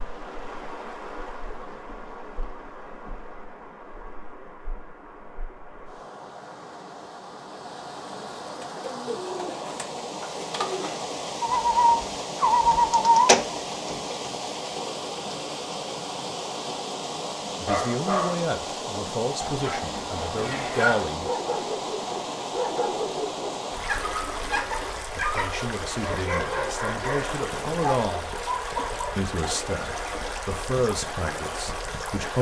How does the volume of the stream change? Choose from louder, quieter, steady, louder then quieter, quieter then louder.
louder.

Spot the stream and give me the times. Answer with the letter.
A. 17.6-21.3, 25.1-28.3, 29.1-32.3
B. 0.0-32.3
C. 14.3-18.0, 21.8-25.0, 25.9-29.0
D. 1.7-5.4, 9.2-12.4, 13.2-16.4
B.